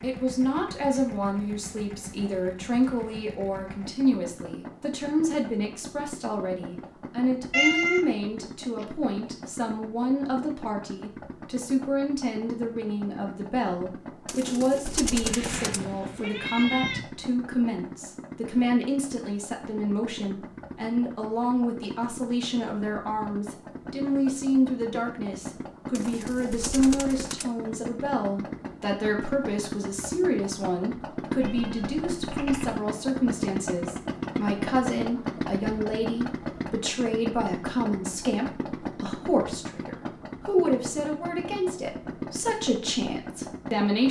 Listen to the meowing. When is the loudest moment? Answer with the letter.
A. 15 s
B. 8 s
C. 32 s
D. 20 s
B.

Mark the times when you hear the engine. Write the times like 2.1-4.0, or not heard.
0.0-44.0.